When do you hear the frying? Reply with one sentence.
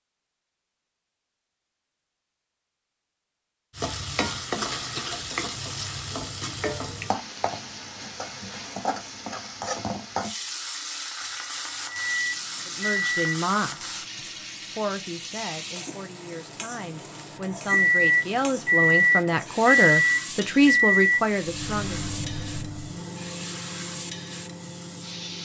The frying can be heard from 3.8 to 25.3 s.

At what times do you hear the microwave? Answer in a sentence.
The microwave can be heard from 11.8 to 25.3 s.